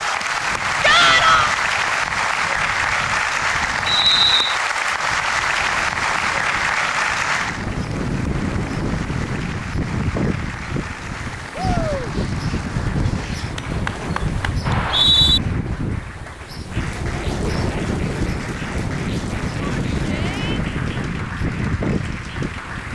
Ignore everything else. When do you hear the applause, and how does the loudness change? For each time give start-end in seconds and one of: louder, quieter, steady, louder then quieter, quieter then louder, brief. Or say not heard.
0.0-22.8 quieter.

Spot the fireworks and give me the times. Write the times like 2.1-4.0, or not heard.
not heard.